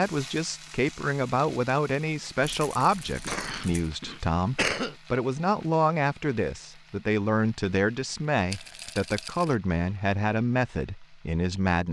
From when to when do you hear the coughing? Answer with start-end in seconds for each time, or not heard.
3.0-5.0.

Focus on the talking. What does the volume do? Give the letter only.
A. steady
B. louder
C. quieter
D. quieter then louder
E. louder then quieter
A.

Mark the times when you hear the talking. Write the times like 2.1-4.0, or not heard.
0.0-11.8.